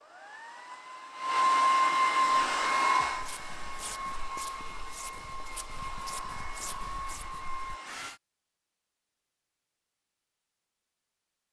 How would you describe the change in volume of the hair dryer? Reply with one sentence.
The volume of the hair dryer goes down.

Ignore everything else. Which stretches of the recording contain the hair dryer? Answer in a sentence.
The hair dryer can be heard from 0.0 to 8.2 s.